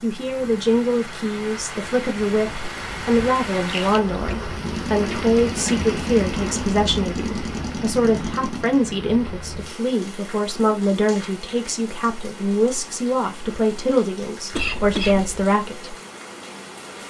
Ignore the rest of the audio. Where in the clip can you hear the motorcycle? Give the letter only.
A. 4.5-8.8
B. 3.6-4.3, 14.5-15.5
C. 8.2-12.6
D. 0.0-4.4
A.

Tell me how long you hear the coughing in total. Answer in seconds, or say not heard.
2 s.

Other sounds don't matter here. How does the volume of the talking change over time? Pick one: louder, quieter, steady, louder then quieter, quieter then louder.
steady.